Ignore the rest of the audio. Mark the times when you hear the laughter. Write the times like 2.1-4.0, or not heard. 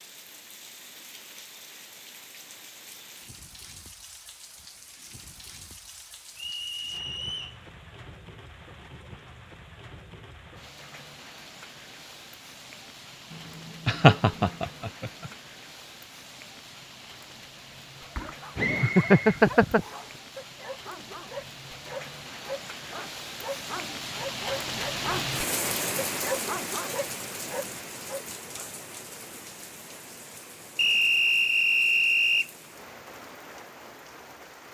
13.8-15.3, 18.1-19.9.